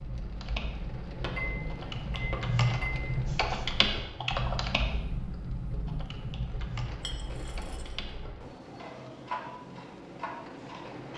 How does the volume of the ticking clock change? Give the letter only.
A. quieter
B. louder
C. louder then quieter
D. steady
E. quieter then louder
E.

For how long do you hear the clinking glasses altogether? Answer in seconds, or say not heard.
3 s.